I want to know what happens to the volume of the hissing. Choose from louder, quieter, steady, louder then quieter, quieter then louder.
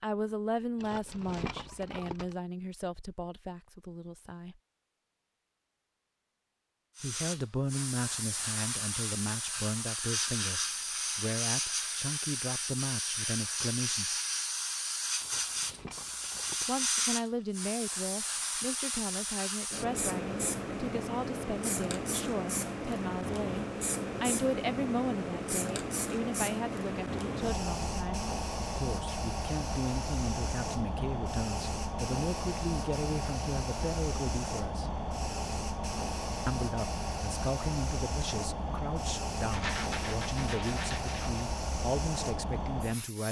steady.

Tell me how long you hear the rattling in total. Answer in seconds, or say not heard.
5 s.